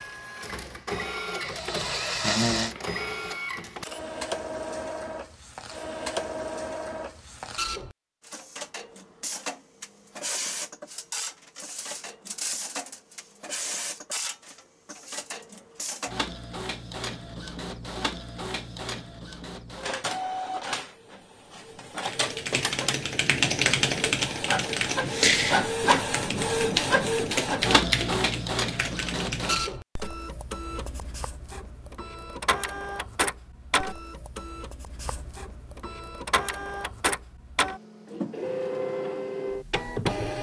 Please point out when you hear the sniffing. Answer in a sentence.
You can hear the sniffing from 1.4 to 2.8 s.